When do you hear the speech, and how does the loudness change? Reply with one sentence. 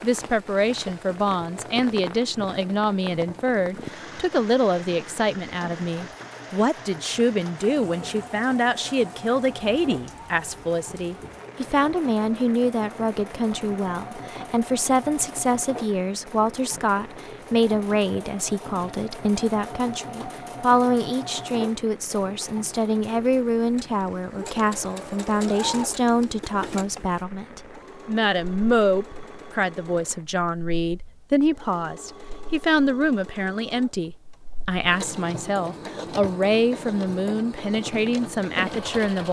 The speech can be heard from 0.0 to 39.2 s, at a steady volume.